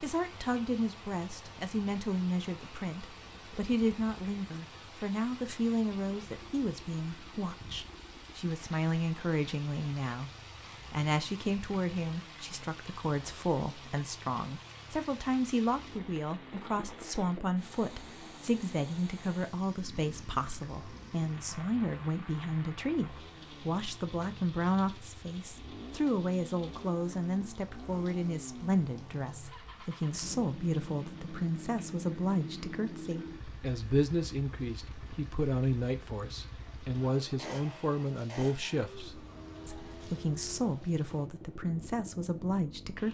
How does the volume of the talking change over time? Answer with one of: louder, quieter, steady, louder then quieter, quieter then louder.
steady.